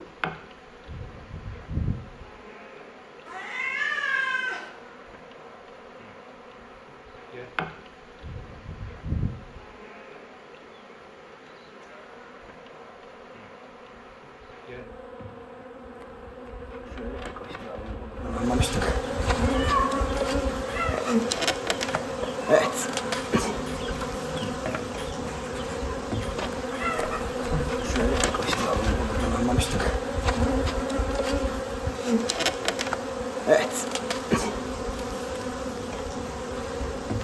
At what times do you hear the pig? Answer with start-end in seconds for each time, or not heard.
not heard.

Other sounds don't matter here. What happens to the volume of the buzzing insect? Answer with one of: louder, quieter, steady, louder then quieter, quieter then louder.
louder.